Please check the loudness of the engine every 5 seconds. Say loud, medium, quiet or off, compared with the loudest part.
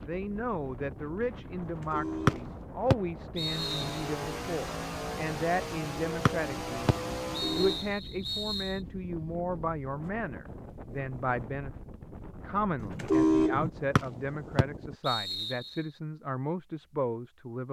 loud, loud, off, off.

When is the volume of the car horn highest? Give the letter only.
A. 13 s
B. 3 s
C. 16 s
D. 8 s
A.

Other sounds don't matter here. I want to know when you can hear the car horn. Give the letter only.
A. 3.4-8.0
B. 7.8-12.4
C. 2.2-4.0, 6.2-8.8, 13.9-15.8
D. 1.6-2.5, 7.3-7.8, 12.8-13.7
D.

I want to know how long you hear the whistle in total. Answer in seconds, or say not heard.
6 s.